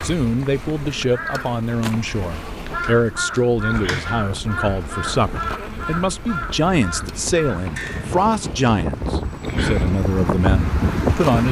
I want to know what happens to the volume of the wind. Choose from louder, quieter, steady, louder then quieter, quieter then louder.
louder.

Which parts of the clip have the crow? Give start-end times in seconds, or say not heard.
0.1-8.1.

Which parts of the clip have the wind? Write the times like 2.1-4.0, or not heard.
3.6-11.4.